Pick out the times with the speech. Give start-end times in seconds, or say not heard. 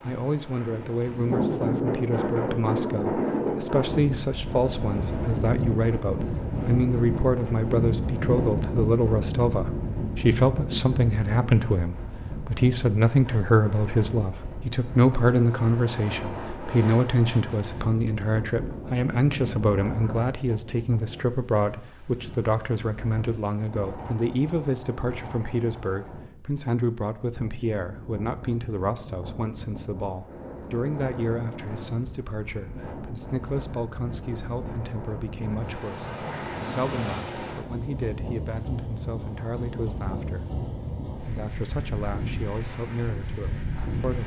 0.0-44.2.